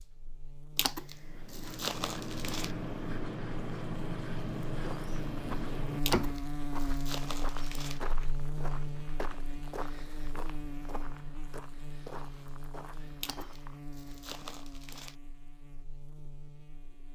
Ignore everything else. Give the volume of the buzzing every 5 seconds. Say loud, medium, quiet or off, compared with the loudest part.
medium, loud, medium, quiet.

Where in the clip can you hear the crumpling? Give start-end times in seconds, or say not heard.
0.8-2.8, 6.0-8.0, 13.2-15.2.